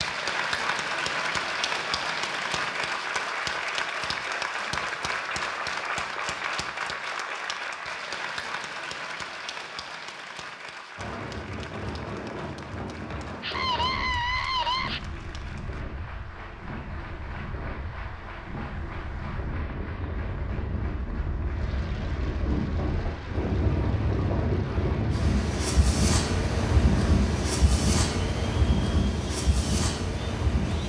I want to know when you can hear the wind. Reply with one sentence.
You can hear the wind from 10.9 to 30.8 s.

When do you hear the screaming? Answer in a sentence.
You can hear the screaming from 13.4 to 15.0 s.